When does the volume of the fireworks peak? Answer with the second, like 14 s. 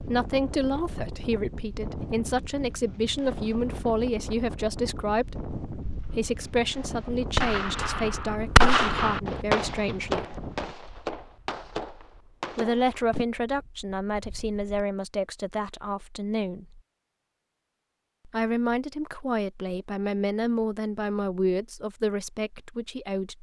9 s.